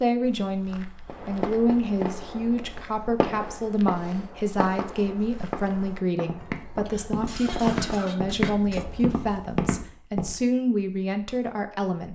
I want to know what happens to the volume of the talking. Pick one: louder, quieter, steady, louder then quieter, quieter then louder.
steady.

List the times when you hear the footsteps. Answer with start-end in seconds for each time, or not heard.
0.2-10.3.